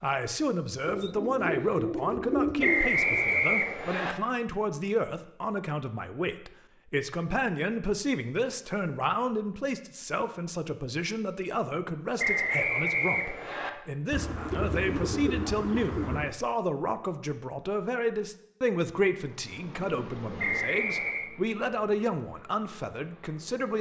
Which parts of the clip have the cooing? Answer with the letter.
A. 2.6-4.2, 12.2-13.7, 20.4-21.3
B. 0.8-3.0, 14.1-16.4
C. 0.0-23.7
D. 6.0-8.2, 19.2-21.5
B.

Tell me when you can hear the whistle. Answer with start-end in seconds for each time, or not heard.
2.6-4.2, 12.2-13.7, 20.4-21.3.